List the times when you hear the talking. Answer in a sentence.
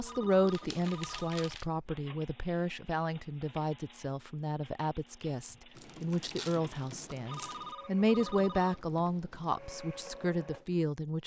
You can hear the talking from 0.0 to 11.2 s.